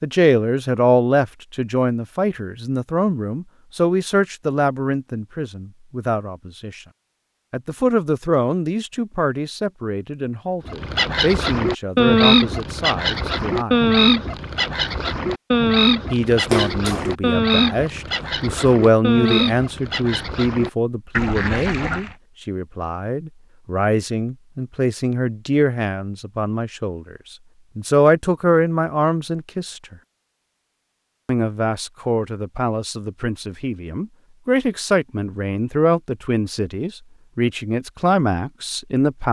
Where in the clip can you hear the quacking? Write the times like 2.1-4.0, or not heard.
10.7-22.1.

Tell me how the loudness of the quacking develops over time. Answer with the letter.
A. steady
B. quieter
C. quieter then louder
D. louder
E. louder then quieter
B.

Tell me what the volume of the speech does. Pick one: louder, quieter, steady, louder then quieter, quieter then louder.
steady.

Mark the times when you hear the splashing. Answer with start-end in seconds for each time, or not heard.
16.5-17.1.